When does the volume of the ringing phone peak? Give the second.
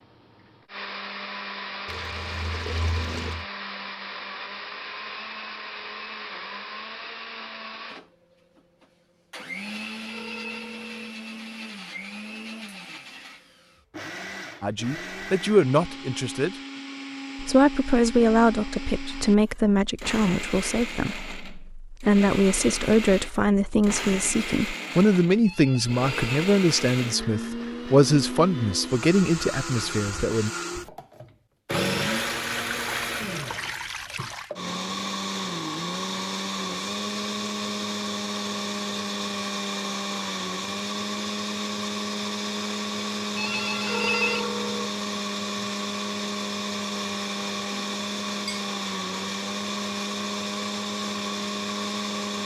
44 s.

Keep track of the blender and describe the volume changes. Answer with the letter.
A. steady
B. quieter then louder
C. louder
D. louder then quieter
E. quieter
C.